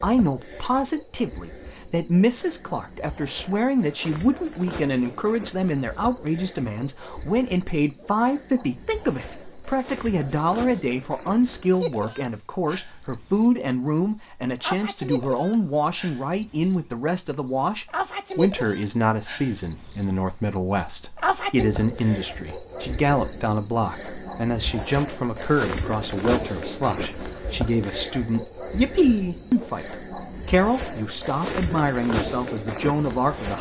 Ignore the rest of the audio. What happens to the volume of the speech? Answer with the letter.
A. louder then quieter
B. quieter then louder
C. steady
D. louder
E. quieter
C.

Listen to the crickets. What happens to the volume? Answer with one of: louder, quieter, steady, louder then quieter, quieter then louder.
louder.